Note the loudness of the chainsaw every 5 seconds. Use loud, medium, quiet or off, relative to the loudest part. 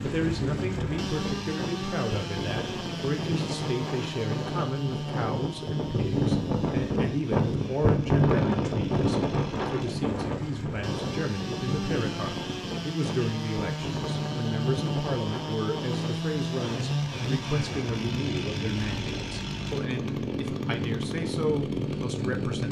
loud, medium, loud, loud, loud.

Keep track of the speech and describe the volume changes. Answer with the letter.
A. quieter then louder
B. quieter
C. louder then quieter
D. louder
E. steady
E.